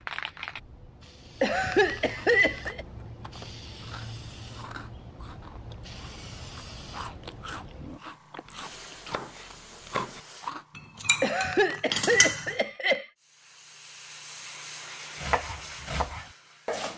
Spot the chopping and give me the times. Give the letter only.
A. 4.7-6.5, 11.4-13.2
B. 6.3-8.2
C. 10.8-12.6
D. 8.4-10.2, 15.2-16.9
D.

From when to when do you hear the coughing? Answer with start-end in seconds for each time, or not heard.
1.4-2.9, 11.2-13.1.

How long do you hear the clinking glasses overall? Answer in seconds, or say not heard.
2 s.